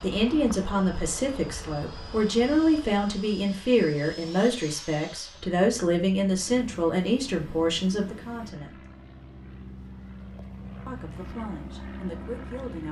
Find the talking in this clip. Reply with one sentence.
The talking can be heard from 0.0 to 8.8 s and from 10.8 to 12.8 s.